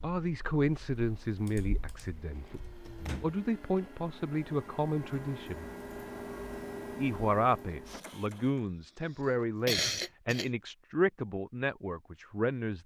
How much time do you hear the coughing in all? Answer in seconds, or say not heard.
2 s.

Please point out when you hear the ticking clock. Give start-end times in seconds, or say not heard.
not heard.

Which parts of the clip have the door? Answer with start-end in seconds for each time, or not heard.
3.0-3.9.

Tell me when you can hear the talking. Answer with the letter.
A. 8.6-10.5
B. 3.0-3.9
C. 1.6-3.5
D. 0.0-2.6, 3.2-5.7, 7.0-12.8
D.